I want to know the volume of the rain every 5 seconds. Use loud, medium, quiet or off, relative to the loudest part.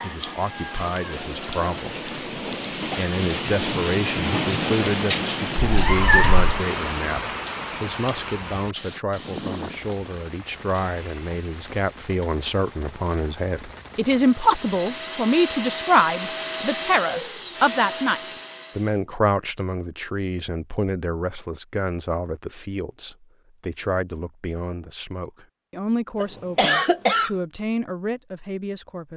loud, loud, quiet, off, off, off.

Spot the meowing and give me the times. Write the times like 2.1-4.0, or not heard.
5.5-6.5.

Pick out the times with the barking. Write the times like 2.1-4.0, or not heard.
not heard.